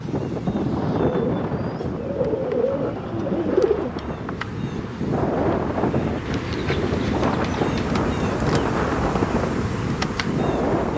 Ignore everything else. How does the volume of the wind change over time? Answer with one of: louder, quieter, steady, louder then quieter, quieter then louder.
quieter then louder.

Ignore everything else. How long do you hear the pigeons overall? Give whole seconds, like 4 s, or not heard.
5 s.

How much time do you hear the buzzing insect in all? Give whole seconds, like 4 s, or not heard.
11 s.